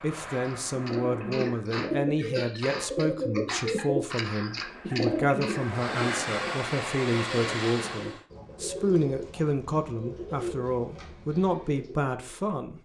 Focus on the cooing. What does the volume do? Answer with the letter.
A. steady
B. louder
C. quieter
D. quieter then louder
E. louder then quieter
C.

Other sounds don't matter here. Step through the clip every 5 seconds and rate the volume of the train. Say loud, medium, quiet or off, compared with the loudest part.
medium, loud, off.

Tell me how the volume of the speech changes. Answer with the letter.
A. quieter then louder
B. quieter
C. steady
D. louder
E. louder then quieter
C.